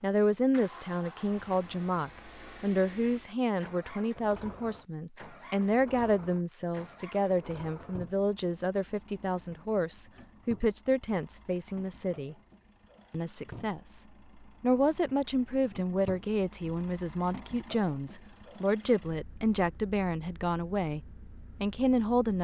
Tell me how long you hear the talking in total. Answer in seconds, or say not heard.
21 s.